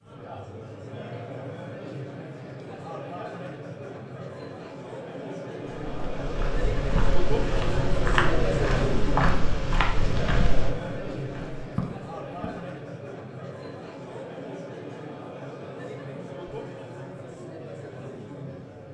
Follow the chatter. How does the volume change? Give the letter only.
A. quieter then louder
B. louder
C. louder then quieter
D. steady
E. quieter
C.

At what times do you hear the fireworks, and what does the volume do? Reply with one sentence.
The fireworks can't be heard in this clip.